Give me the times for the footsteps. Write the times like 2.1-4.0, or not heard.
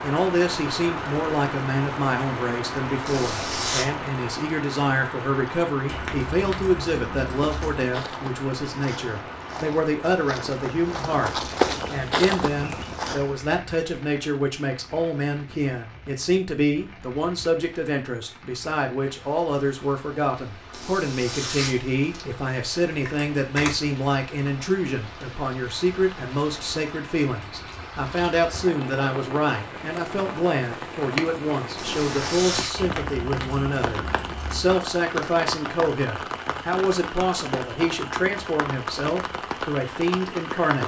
7.2-13.3.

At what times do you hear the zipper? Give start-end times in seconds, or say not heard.
3.0-3.9, 20.7-22.2, 31.8-32.7.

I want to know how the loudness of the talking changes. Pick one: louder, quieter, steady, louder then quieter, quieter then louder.
steady.